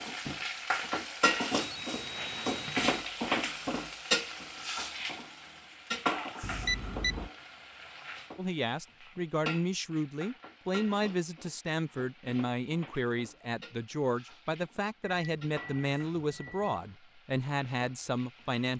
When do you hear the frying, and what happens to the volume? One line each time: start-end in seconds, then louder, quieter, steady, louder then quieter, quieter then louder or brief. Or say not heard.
0.0-18.7 quieter.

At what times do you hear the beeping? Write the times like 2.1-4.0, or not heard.
1.6-3.0, 6.4-7.3, 15.0-16.9.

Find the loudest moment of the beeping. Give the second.
7 s.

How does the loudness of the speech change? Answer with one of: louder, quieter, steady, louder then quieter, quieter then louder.
steady.